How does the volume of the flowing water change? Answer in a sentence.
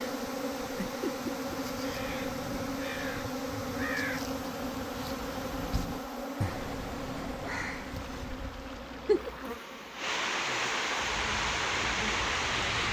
The volume of the flowing water goes up.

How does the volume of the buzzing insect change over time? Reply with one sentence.
The loudness of the buzzing insect goes down.